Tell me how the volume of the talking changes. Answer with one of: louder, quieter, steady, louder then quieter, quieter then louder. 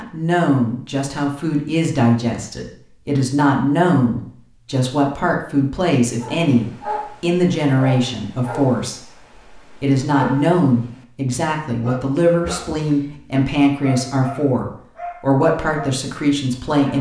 steady.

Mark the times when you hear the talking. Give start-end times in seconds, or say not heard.
0.0-16.9.